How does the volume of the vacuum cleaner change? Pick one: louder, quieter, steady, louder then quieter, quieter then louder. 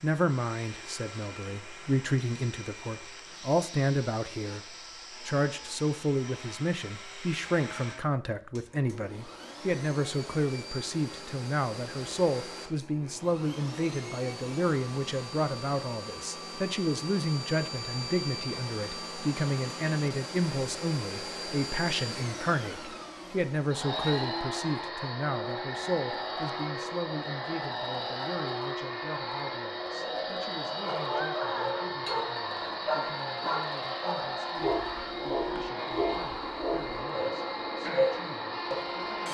louder.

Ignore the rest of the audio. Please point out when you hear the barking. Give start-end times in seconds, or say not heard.
30.8-39.0.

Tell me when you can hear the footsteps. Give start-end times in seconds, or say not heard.
not heard.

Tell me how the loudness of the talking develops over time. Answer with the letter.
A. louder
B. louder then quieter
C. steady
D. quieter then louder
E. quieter
E.